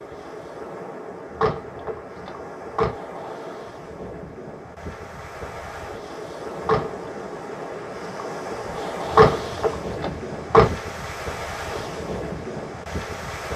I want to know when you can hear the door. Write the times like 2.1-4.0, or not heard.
1.3-3.0, 6.6-7.1, 9.1-10.7.